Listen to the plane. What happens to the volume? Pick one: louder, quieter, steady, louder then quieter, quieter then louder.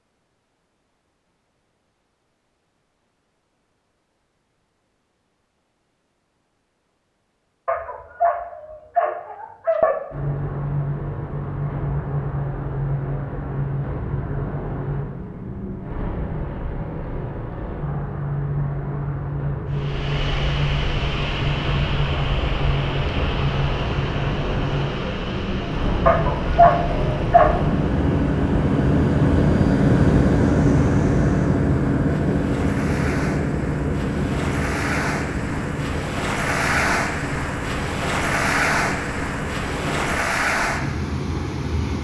louder then quieter.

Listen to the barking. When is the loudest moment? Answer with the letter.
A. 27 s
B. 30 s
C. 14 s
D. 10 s
A.